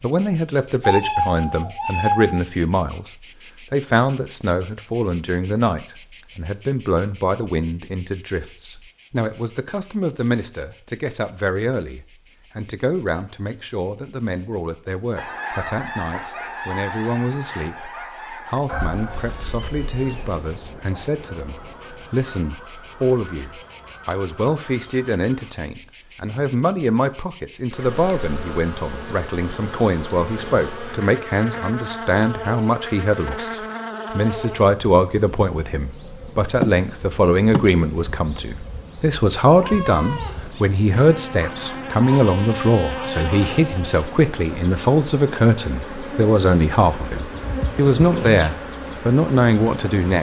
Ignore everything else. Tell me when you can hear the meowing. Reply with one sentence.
The meowing can be heard from 0.8 to 2.4 s, from 18.7 to 20.5 s and from 39.5 to 40.5 s.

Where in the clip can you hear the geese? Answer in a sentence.
The geese can be heard from 15.2 to 25.5 s.